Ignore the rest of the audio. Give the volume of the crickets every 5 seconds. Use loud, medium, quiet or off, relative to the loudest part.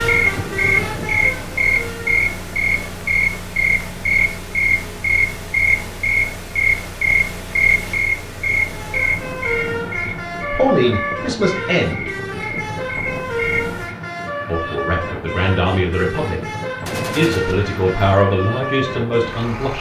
loud, loud, medium, off.